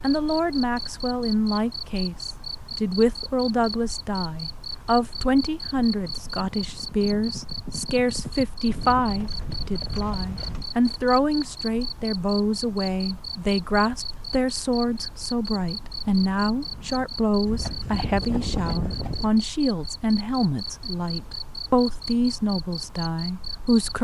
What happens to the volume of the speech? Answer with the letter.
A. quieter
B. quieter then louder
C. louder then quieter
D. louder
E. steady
E.